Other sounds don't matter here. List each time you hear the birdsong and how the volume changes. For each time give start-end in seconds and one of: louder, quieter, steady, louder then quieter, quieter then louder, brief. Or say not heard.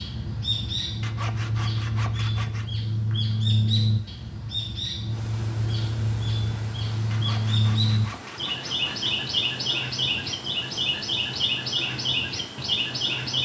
0.0-13.4 steady.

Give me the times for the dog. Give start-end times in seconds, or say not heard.
not heard.